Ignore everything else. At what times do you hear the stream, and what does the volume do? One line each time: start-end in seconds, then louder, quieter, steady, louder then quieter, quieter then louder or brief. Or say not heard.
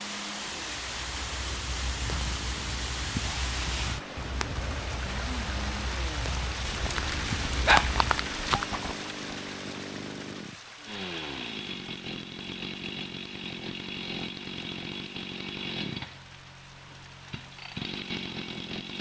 0.0-18.9 quieter.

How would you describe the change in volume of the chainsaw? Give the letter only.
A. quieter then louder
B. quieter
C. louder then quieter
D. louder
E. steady
D.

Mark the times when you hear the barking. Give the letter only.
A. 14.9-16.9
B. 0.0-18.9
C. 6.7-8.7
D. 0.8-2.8
C.